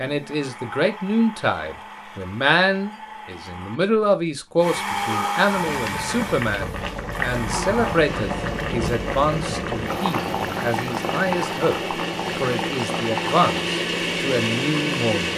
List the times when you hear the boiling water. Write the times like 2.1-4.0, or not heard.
5.5-15.3.